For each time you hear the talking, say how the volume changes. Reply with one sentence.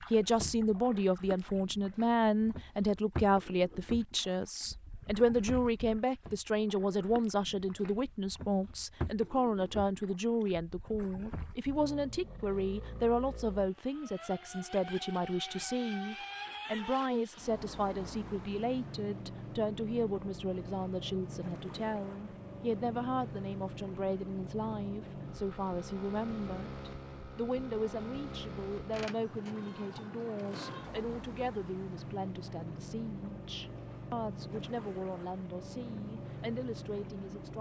The talking can be heard from 0.1 to 37.5 s, getting quieter.